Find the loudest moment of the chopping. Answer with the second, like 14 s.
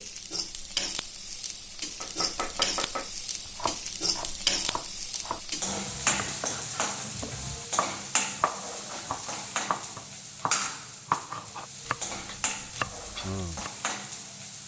11 s.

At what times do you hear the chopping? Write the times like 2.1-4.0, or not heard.
2.0-13.7.